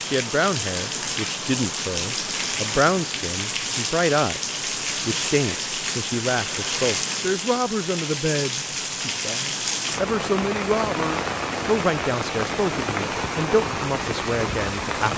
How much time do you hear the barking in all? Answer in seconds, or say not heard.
not heard.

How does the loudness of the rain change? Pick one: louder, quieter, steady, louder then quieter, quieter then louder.
steady.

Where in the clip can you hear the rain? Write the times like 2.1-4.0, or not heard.
0.0-15.1.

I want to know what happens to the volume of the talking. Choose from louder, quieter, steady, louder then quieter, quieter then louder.
steady.